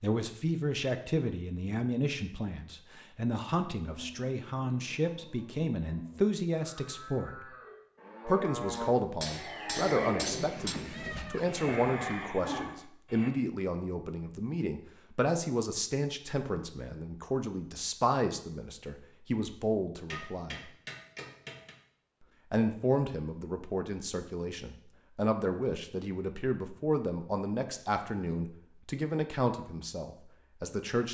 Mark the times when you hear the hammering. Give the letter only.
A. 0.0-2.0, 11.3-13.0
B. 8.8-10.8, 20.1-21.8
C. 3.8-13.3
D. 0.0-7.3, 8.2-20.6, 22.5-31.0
B.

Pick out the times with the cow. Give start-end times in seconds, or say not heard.
3.8-13.3.